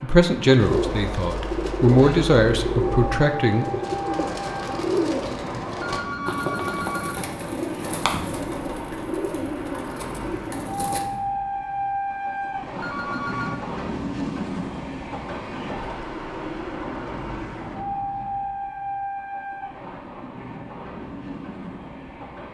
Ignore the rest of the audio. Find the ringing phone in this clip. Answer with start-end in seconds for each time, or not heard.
5.8-7.2, 12.8-13.6.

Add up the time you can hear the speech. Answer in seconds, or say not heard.
4 s.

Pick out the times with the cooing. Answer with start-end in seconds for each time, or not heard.
0.6-11.1.